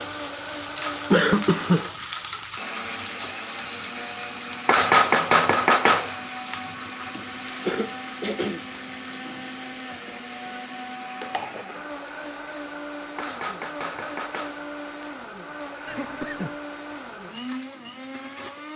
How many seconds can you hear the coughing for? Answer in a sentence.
You can hear the coughing for 3 seconds altogether.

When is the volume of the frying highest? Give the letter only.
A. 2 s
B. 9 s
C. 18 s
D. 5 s
D.